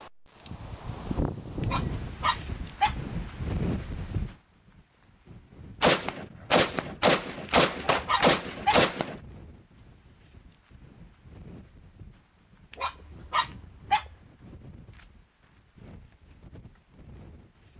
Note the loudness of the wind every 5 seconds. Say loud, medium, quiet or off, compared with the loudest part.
loud, quiet, quiet, quiet.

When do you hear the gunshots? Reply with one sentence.
The gunshots can be heard from 5.8 to 9.2 s.